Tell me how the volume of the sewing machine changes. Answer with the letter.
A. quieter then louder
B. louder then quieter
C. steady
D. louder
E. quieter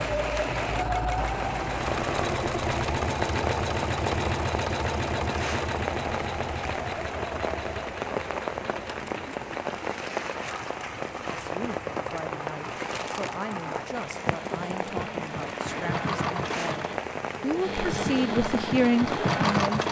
A.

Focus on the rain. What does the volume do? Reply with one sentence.
The loudness of the rain stays about the same.